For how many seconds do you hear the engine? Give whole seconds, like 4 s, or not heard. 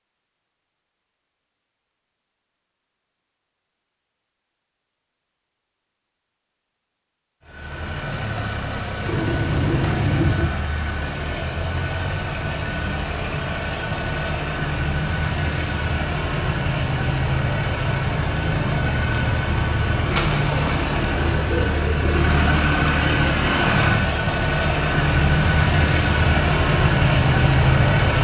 21 s.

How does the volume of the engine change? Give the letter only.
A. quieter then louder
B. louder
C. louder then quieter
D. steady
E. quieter
B.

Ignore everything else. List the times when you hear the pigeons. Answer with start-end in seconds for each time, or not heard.
9.0-10.6, 20.1-22.2.